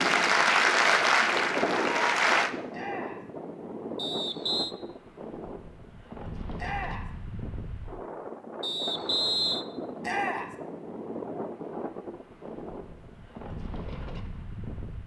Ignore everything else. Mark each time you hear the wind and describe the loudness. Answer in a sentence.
You can hear the wind from 0.0 to 15.0 s, getting quieter.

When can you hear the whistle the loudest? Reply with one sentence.
The volume of the whistle peaks at 9 seconds.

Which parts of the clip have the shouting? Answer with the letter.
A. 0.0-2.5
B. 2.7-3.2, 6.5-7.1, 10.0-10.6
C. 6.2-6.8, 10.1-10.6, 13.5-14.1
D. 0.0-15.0
B.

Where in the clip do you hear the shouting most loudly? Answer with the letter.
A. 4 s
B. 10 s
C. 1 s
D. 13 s
B.